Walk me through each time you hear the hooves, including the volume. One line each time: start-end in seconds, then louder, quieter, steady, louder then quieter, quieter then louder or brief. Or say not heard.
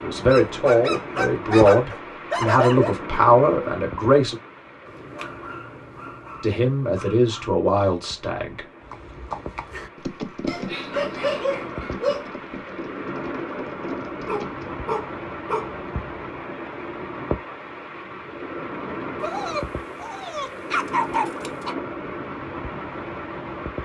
8.8-14.8 quieter.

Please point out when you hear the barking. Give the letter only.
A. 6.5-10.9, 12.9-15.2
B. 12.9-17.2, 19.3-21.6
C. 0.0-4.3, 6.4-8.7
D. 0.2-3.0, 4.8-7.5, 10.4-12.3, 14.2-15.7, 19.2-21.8
D.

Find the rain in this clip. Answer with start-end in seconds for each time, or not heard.
0.0-23.8.